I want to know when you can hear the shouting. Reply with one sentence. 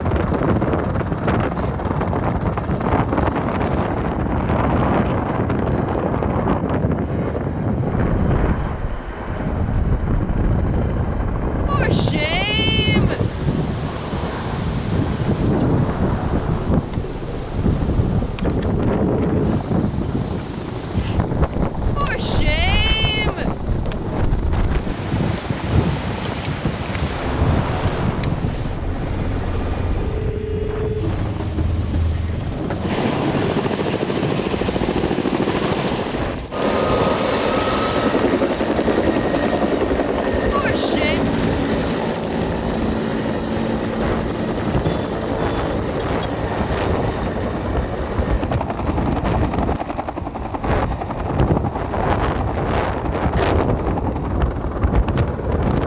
You can hear the shouting from 11.7 to 13.2 s, from 21.9 to 23.5 s and from 40.5 to 41.2 s.